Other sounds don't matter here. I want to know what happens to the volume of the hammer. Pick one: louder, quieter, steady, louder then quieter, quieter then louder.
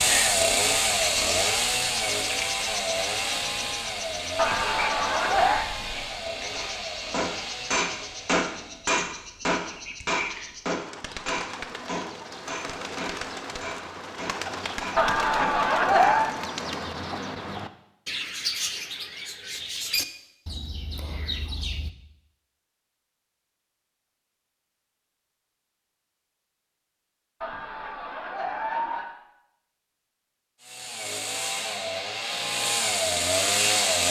quieter.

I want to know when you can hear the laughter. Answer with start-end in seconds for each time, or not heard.
4.3-5.7, 14.9-16.4, 27.4-29.1.